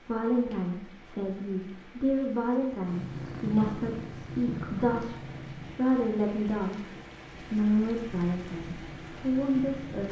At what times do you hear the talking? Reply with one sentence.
The talking can be heard from 0.1 to 10.0 s.